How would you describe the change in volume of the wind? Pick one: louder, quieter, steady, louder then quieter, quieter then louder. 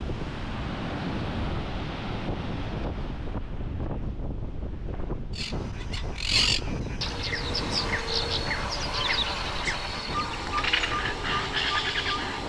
quieter.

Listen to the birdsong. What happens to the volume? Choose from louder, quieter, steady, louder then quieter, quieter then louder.
steady.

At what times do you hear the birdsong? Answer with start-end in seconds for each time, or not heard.
5.3-12.4.